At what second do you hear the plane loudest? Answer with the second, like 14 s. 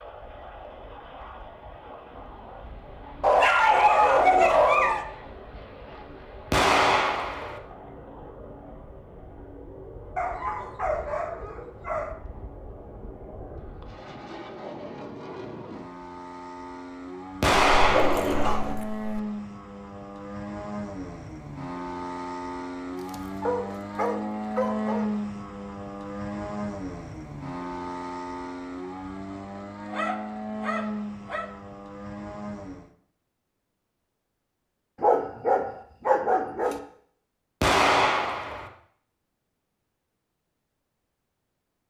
25 s.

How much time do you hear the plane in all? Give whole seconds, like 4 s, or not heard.
33 s.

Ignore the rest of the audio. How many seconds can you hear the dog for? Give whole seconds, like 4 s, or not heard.
11 s.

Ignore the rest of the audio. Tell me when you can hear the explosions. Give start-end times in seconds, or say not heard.
6.5-7.6, 17.4-18.5, 37.6-38.7.